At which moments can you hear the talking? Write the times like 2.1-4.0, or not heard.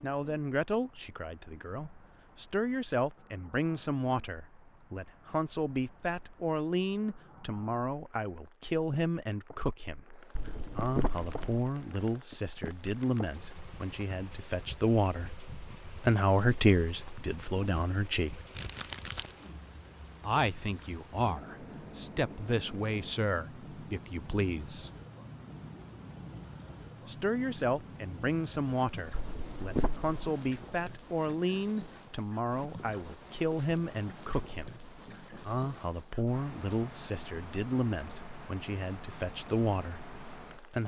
0.0-18.4, 20.2-24.9, 27.1-40.8.